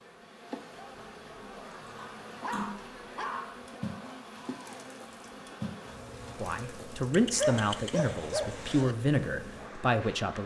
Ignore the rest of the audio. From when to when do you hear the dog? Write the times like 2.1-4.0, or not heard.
1.9-3.6, 7.1-8.9.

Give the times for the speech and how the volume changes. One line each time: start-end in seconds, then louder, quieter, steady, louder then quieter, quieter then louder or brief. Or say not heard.
6.4-10.4 quieter then louder.